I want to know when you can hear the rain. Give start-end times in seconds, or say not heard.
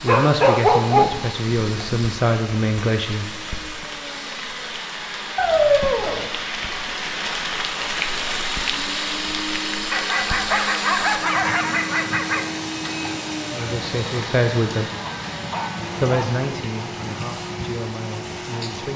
0.0-18.9.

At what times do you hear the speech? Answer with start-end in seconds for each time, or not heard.
0.0-3.4, 13.5-14.9, 16.0-18.9.